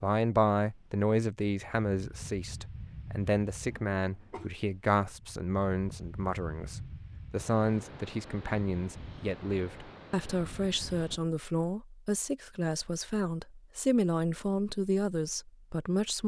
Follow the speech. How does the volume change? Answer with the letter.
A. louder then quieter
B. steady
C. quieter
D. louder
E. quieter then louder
B.